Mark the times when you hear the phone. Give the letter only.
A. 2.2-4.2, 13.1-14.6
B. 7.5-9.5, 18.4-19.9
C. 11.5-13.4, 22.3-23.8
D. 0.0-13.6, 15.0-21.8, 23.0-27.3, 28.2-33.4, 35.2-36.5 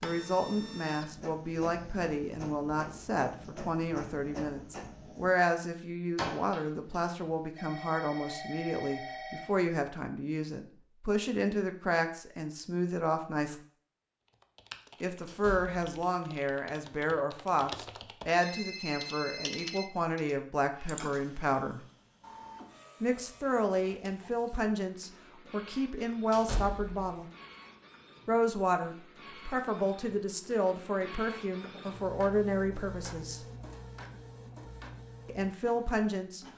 B.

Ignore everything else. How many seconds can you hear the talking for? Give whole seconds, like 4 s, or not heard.
31 s.